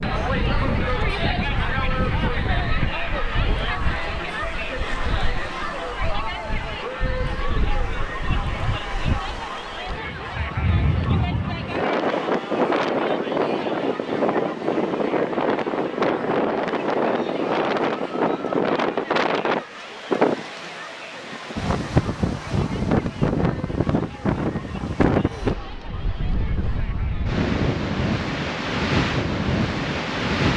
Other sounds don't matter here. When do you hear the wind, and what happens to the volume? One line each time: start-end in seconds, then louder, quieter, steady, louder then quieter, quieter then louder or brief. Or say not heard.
0.0-30.5 louder.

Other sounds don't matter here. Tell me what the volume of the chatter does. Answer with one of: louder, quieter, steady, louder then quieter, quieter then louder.
quieter.